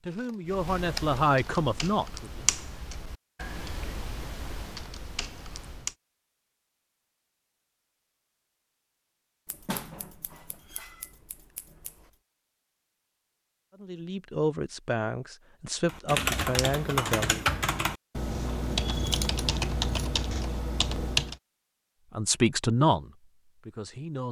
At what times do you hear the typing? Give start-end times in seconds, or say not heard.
0.5-6.0, 15.8-21.4.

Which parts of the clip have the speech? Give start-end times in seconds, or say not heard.
0.0-2.4, 13.8-17.4, 22.1-24.2.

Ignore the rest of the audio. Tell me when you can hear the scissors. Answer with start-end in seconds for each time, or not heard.
0.1-1.2, 9.4-12.1, 18.7-20.2.